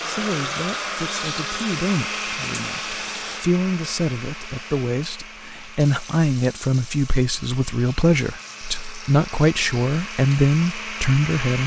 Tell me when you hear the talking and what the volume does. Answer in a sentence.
You can hear the talking from 0.0 to 11.6 s, getting louder.